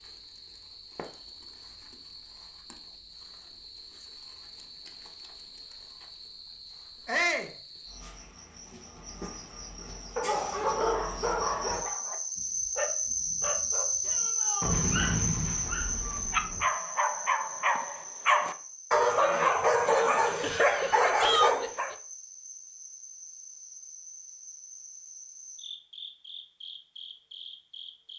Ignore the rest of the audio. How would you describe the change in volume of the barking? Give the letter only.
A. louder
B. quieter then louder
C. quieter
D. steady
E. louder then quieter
B.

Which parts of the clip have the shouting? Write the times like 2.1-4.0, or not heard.
7.0-7.5, 14.0-14.9, 21.1-21.6.